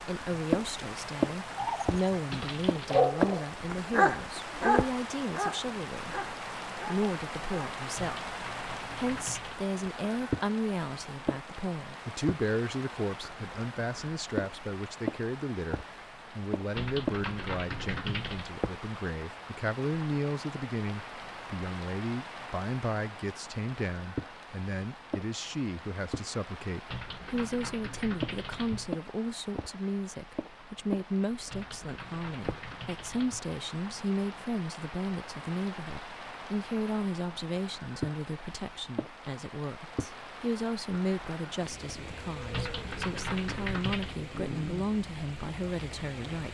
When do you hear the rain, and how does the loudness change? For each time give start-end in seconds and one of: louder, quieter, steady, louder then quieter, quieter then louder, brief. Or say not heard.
0.0-46.4 quieter.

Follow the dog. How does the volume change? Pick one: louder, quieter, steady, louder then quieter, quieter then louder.
quieter.